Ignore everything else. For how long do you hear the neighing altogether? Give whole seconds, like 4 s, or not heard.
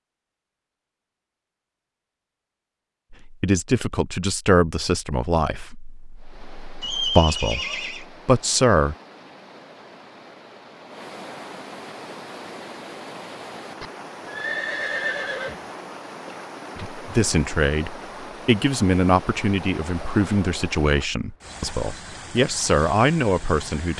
3 s.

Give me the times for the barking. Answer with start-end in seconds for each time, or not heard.
not heard.